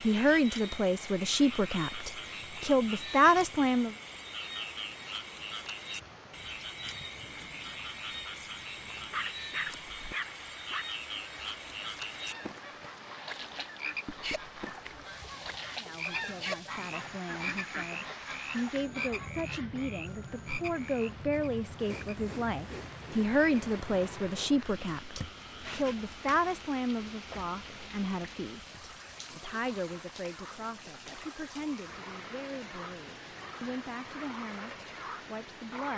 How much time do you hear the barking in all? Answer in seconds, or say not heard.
2 s.